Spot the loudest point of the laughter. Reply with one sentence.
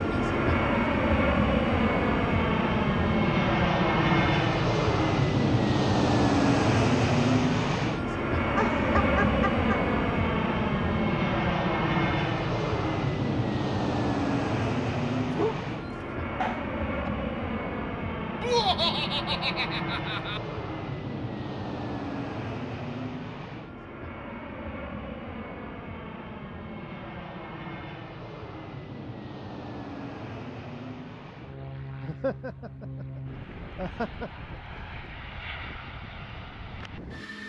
The loudest moment of the laughter is at 19 seconds.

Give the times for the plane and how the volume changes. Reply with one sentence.
You can hear the plane from 0.0 to 37.4 s, getting quieter.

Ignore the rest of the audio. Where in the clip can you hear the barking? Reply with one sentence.
You can hear the barking from 15.2 to 17.1 s.